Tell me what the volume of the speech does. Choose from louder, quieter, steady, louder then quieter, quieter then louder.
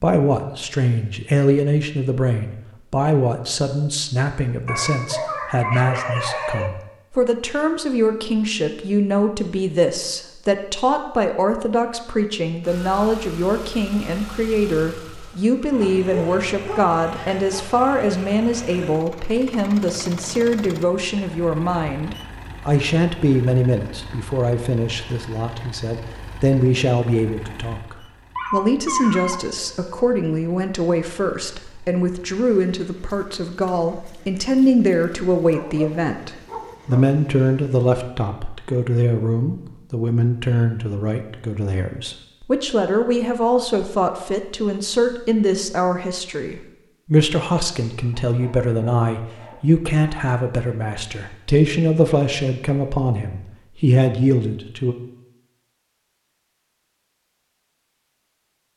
steady.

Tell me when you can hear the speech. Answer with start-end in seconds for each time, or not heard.
0.0-55.0.